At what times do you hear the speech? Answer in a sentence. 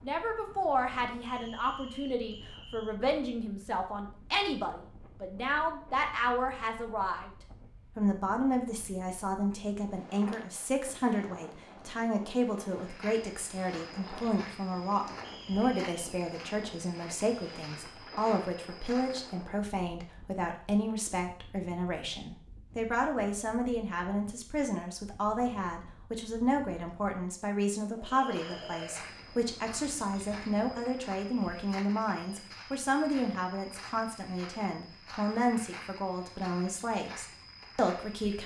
The speech can be heard from 0.0 to 7.3 s and from 8.0 to 38.4 s.